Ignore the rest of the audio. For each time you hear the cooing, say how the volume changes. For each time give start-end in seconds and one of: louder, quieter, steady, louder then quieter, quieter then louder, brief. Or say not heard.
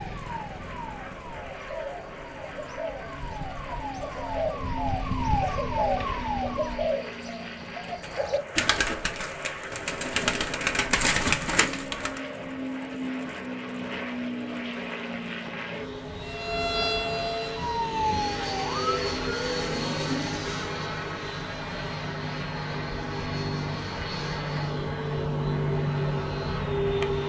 1.4-12.2 louder.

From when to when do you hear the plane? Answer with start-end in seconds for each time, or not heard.
0.0-27.2.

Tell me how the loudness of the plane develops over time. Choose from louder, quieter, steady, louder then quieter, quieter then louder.
louder.